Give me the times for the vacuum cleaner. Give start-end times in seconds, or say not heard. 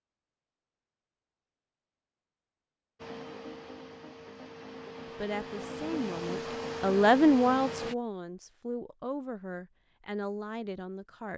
3.0-8.0.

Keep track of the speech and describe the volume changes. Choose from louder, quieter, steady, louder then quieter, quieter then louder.
louder then quieter.